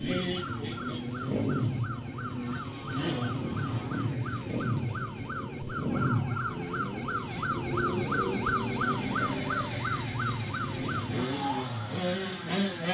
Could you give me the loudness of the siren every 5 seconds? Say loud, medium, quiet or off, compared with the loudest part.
medium, loud, loud.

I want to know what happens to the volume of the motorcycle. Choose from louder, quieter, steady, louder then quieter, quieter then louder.
steady.